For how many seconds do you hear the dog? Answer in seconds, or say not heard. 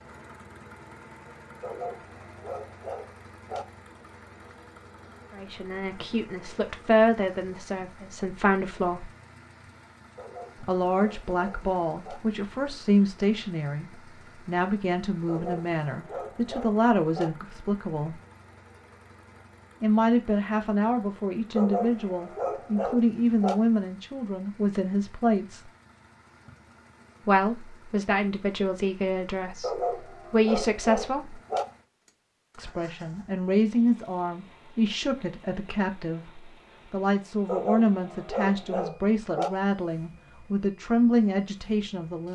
12 s.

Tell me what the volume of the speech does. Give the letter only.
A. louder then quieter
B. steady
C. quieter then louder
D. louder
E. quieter
B.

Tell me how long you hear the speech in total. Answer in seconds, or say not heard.
31 s.